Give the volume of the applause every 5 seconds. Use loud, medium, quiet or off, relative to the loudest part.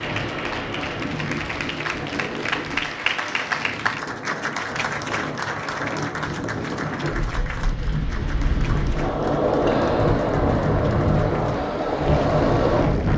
loud, medium, quiet.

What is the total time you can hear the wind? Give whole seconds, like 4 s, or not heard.
13 s.